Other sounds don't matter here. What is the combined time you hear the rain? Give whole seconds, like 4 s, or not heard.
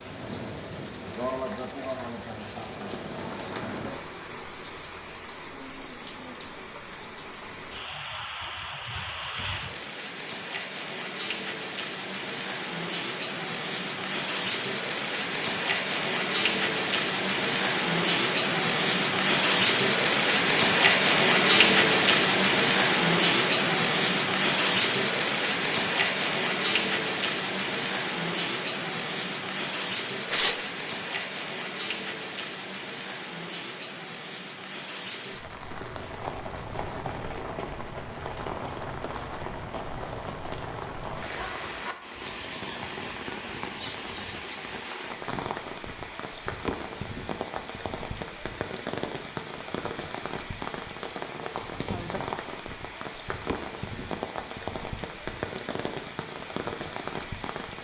58 s.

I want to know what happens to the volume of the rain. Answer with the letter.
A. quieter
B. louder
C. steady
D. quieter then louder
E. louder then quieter
E.